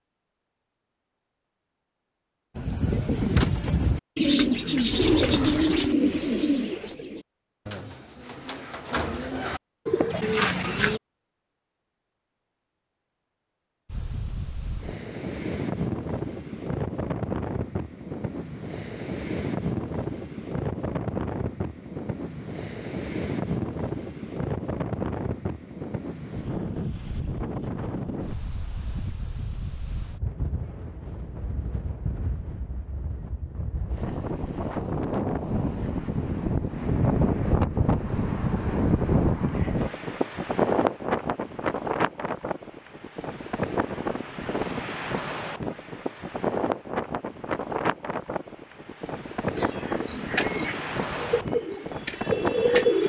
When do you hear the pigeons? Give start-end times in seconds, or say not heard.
2.5-11.0, 49.5-53.0.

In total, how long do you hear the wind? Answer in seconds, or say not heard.
39 s.